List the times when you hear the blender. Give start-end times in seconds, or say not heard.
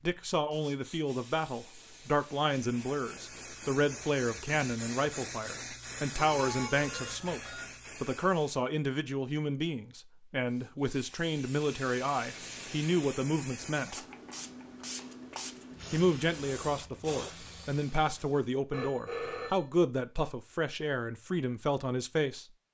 not heard.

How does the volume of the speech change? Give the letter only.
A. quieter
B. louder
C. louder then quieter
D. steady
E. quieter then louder
D.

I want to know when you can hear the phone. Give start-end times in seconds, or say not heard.
6.2-7.7, 18.7-19.6.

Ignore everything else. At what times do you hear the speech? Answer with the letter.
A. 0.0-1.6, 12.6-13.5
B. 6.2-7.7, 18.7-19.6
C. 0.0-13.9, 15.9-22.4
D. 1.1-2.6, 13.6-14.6
C.